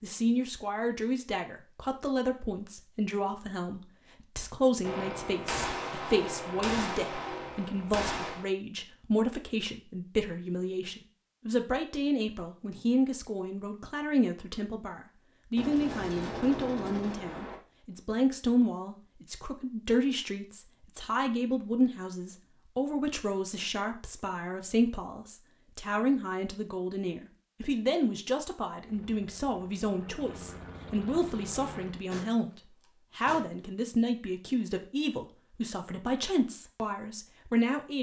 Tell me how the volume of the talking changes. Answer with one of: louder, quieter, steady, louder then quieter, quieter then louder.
steady.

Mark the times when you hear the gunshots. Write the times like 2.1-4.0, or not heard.
4.8-8.4, 15.6-17.6, 32.1-33.6.